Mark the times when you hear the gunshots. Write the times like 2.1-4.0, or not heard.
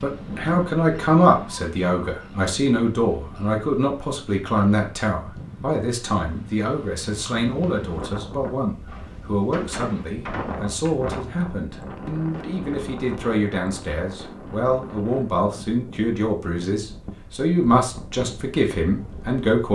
8.8-10.9.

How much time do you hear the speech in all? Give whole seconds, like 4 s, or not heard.
20 s.